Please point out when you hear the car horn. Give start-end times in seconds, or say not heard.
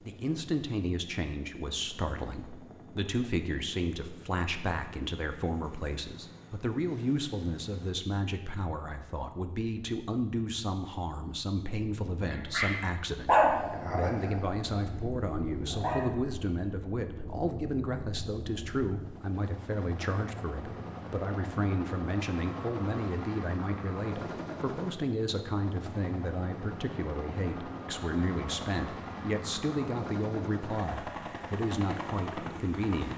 not heard.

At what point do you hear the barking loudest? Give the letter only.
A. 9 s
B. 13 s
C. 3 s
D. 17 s
B.